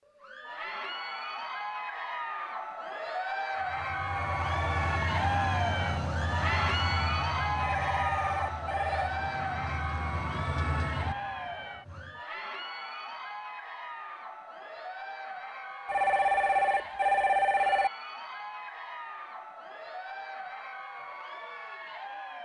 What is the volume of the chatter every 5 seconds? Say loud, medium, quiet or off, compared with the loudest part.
loud, loud, medium, medium, medium.